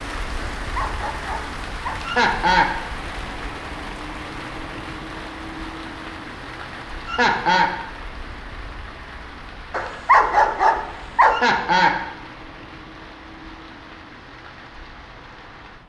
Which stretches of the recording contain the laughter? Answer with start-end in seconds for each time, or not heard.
2.0-2.7, 7.0-7.7, 11.3-12.1.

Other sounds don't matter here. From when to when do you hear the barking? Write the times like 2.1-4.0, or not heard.
0.6-2.0, 9.7-11.6.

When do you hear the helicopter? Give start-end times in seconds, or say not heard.
not heard.